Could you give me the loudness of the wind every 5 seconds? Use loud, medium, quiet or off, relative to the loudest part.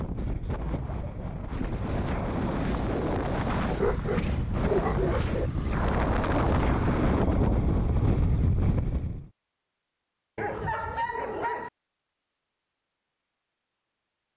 loud, loud, off.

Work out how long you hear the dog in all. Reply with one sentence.
The dog can be heard for 3 seconds in total.